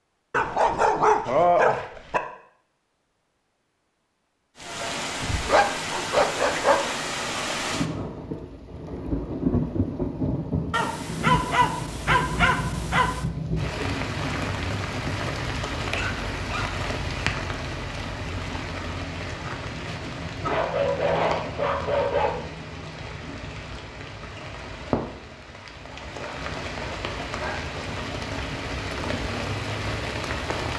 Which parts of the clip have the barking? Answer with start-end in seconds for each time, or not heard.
0.3-2.2, 5.5-6.9, 10.7-13.2, 15.9-16.7, 20.4-22.4, 25.9-27.6.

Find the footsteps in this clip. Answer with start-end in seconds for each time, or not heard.
not heard.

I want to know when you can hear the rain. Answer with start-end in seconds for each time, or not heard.
4.5-30.7.